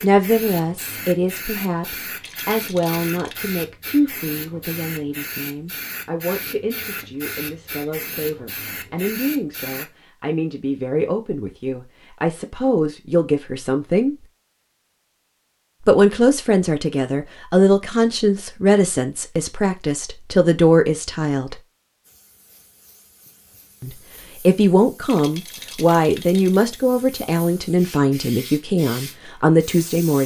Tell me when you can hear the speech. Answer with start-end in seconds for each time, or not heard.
0.0-14.2, 15.8-21.6, 23.8-30.2.